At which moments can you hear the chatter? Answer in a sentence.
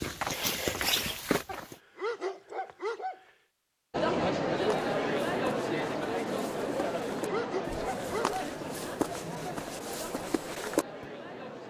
You can hear the chatter from 3.9 to 11.6 s.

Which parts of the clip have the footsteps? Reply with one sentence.
You can hear the footsteps from 0.0 to 1.8 s and from 4.5 to 11.1 s.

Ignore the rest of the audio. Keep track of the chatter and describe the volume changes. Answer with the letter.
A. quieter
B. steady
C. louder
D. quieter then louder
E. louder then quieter
A.